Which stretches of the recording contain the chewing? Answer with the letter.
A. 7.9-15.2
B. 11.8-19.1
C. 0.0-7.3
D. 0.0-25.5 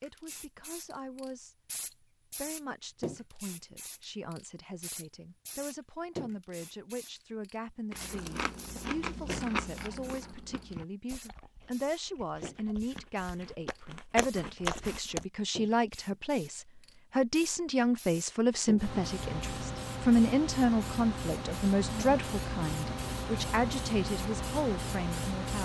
A.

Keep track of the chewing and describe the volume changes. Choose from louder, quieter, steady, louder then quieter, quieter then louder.
quieter then louder.